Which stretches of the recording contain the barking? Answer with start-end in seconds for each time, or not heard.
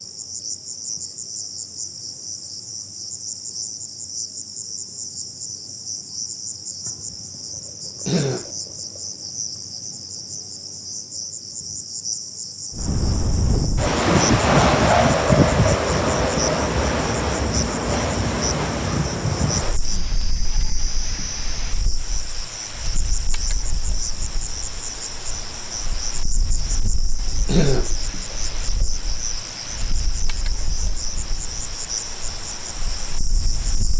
not heard.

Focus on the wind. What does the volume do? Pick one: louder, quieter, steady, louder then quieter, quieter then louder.
quieter.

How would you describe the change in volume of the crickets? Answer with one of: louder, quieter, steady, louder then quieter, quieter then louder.
steady.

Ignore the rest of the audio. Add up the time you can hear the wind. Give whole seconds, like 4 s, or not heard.
21 s.